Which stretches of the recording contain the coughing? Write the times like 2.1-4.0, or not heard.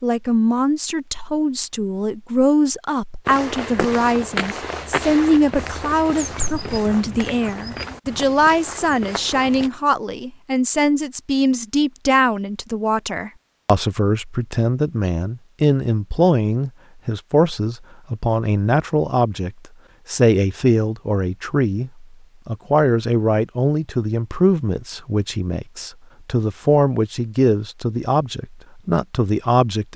not heard.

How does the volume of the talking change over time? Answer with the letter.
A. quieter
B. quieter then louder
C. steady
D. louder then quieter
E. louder
C.